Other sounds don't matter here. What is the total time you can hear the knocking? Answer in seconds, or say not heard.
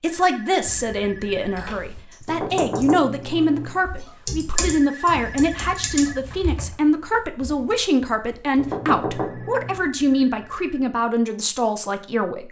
3 s.